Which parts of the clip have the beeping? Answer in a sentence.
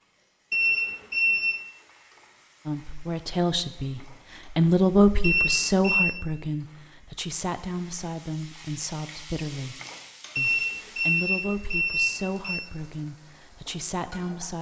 The beeping can be heard from 0.5 to 1.7 s, from 5.2 to 6.2 s and from 10.3 to 12.7 s.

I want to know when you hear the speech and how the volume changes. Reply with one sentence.
You can hear the speech from 2.6 to 14.5 s, getting quieter.